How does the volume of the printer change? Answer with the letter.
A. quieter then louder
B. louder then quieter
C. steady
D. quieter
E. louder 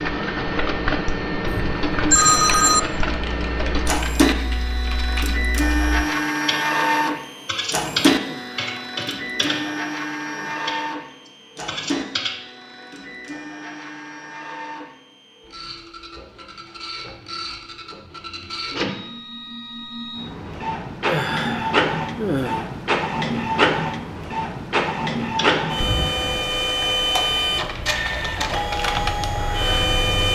A.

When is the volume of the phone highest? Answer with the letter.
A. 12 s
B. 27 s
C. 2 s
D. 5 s
C.